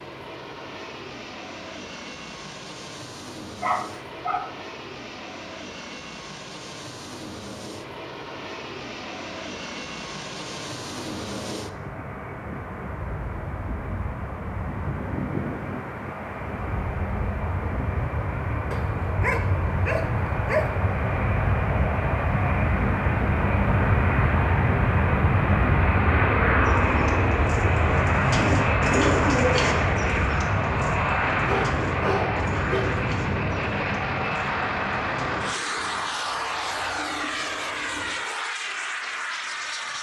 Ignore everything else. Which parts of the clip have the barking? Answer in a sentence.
The barking can be heard from 3.6 to 4.5 s, from 18.7 to 20.9 s and from 31.4 to 33.0 s.